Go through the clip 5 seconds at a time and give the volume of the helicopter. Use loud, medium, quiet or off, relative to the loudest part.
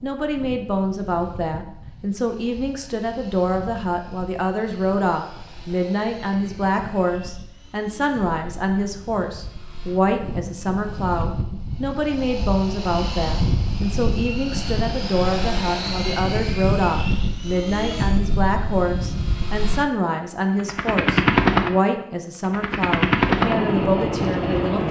quiet, quiet, medium, medium, loud.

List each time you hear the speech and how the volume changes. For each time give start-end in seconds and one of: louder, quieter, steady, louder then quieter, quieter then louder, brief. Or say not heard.
0.0-24.8 steady.